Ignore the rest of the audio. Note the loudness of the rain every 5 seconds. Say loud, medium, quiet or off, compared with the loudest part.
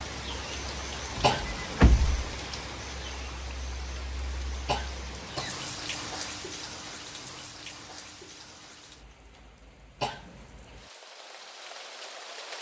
loud, loud, medium.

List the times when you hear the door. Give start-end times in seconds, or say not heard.
1.1-2.4.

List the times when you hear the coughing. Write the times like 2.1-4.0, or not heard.
1.2-1.8, 4.7-5.7, 10.0-10.4.